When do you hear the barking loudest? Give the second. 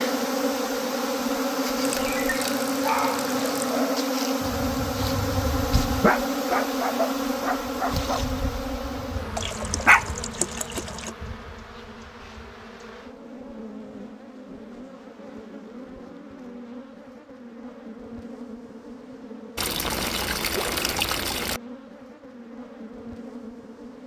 10 s.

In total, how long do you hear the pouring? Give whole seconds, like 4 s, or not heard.
6 s.